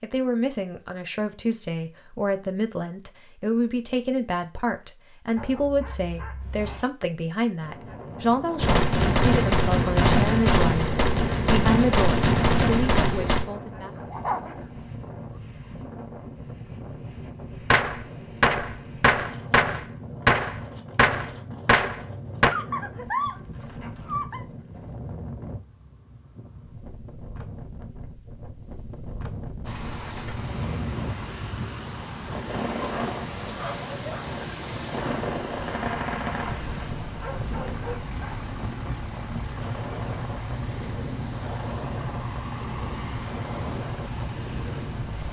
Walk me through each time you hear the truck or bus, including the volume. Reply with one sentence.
The truck or bus can be heard from 29.6 to 45.2 s, at a steady volume.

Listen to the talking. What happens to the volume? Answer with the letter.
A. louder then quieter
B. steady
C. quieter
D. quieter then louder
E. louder
B.